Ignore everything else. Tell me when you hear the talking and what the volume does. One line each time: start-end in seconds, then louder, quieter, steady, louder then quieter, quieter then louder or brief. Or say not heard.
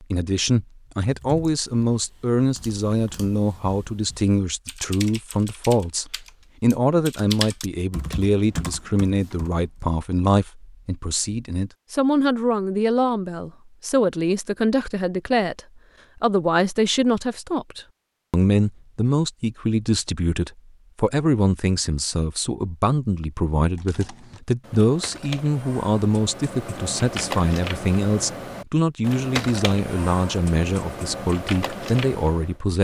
0.0-32.8 steady.